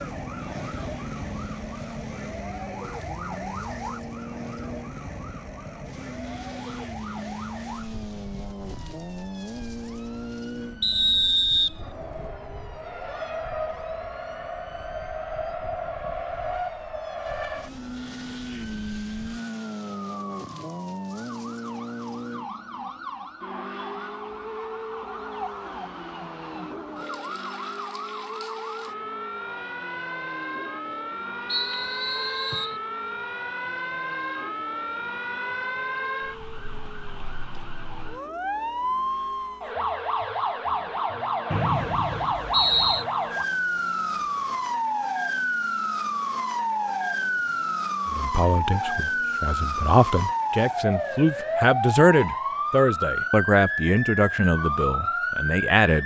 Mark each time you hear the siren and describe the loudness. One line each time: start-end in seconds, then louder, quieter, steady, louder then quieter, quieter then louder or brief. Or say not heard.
0.0-56.0 quieter then louder.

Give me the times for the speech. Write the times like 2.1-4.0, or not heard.
48.1-56.0.